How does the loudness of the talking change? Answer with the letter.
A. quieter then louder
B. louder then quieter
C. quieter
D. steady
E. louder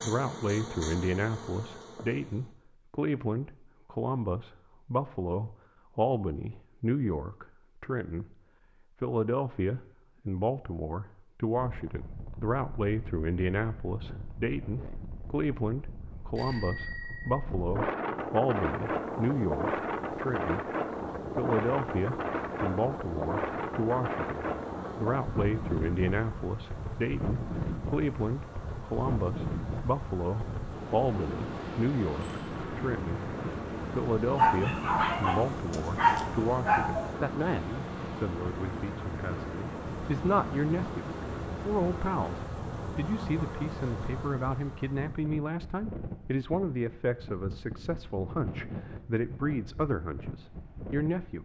D.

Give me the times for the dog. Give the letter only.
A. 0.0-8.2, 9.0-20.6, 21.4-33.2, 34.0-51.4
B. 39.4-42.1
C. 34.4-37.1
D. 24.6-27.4
C.